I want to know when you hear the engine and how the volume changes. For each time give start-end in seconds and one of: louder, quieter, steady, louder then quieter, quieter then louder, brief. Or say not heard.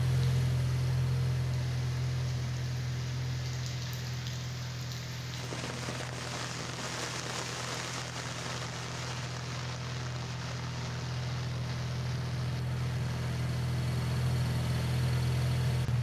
0.0-15.9 quieter then louder.